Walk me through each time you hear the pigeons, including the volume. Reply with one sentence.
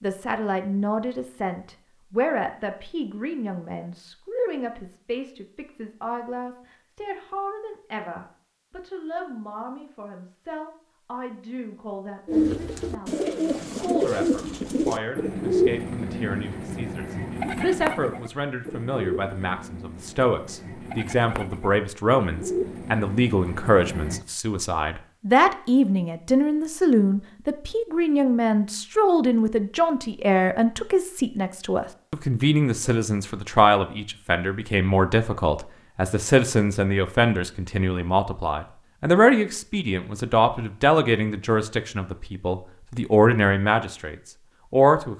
You can hear the pigeons from 12.2 to 24.2 s, getting quieter then louder.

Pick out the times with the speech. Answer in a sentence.
You can hear the speech from 0.0 to 45.1 s.